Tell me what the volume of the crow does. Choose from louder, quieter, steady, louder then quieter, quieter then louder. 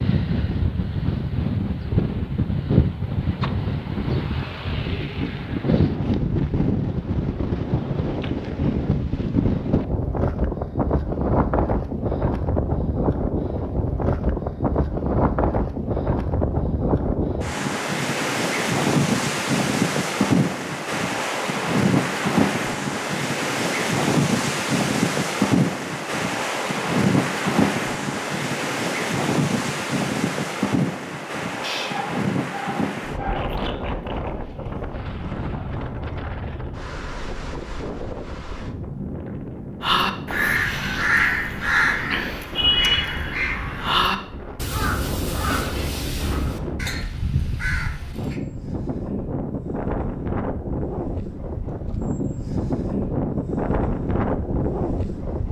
quieter.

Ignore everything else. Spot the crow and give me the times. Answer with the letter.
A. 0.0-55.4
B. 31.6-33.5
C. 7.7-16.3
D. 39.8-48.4
D.